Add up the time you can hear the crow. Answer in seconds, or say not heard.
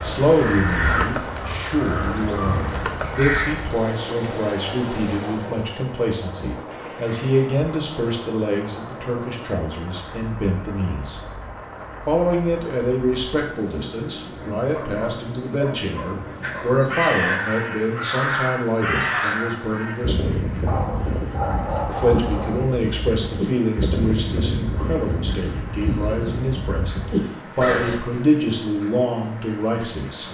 15 s.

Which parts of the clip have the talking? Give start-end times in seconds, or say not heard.
0.0-11.2, 12.1-20.4, 21.9-30.2.